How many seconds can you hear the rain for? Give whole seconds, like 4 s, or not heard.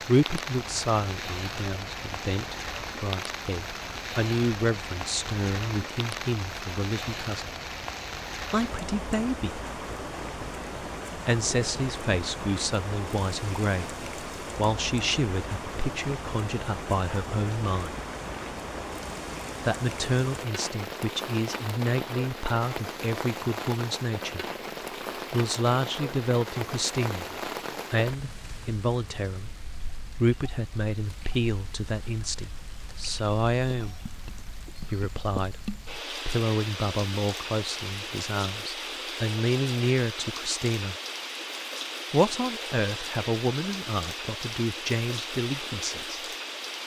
47 s.